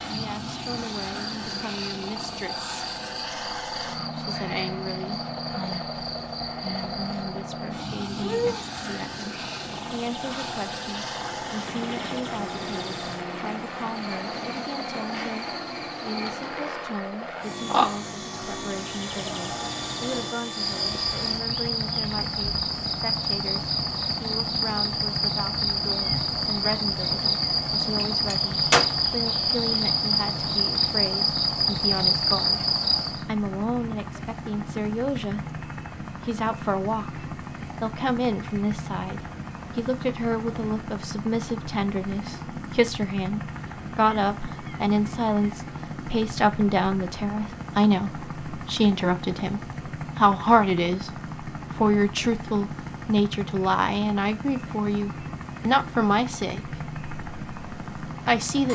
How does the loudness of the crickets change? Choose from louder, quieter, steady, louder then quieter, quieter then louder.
louder.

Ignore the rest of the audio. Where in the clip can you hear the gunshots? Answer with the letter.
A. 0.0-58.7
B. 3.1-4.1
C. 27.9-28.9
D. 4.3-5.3
C.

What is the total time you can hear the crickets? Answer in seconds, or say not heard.
33 s.